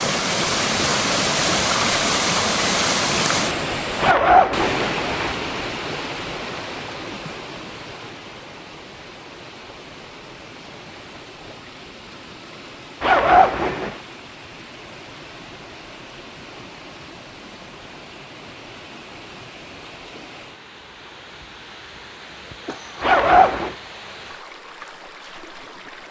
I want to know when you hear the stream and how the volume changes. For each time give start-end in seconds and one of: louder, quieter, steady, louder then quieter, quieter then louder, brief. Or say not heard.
0.0-26.0 quieter.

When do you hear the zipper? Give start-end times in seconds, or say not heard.
4.0-5.3, 13.0-14.0, 23.0-23.8.